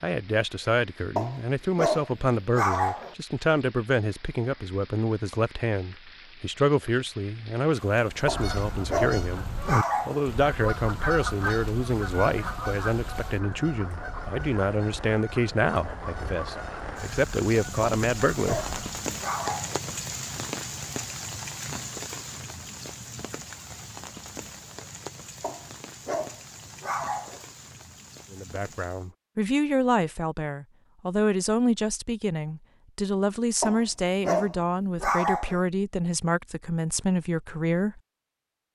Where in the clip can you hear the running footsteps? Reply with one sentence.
The running footsteps can't be heard in this clip.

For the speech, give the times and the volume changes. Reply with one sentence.
You can hear the speech from 0.0 to 18.6 s, at a steady volume; and from 28.3 to 38.0 s, at a steady volume.